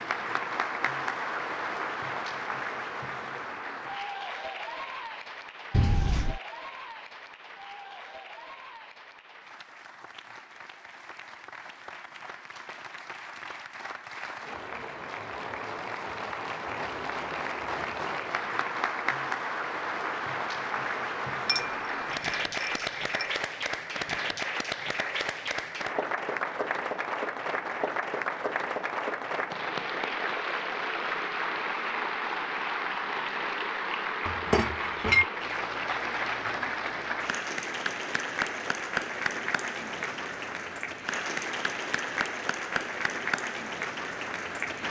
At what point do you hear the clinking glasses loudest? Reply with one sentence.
The volume of the clinking glasses peaks at 35 seconds.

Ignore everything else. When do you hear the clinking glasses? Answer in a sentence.
The clinking glasses can be heard from 5.7 to 6.4 s, from 21.4 to 23.3 s and from 34.2 to 35.2 s.